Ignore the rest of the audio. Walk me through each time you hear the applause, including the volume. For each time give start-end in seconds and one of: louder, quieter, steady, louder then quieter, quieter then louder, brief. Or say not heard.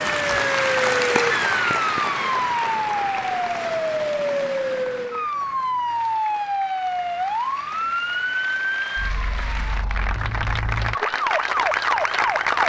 0.0-12.6 quieter then louder.